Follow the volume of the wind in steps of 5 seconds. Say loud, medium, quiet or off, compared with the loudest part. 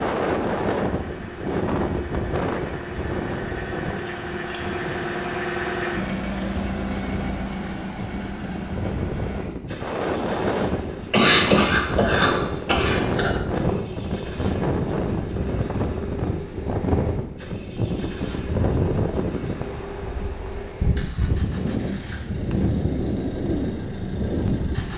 loud, medium, loud, loud, loud.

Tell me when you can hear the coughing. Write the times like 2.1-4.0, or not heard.
11.1-13.3.